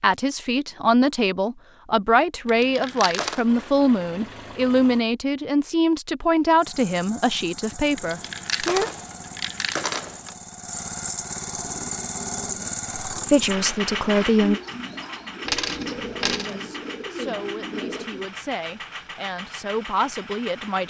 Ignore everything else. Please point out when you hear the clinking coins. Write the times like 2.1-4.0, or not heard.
2.5-3.5, 8.0-10.3, 15.4-16.6.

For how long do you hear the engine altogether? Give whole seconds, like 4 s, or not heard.
16 s.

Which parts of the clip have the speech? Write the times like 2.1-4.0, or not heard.
0.0-8.9, 13.1-14.6, 16.4-20.8.